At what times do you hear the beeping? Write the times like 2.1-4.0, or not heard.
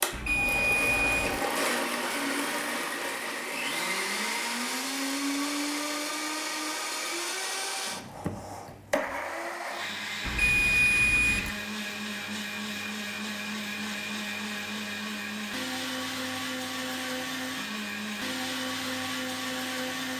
0.1-1.4, 10.2-11.5.